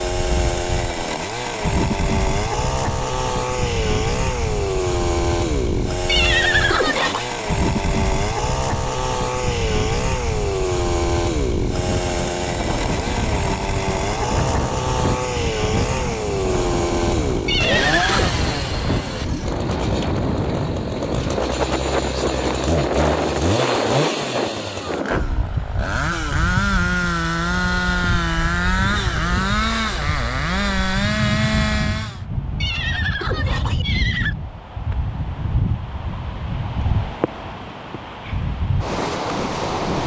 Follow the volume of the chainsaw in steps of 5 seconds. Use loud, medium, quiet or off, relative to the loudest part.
loud, loud, loud, loud, loud, loud, loud, off.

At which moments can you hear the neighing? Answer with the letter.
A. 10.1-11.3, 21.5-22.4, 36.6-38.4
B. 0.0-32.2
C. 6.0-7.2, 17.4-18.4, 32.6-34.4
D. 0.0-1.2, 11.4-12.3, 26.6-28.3
C.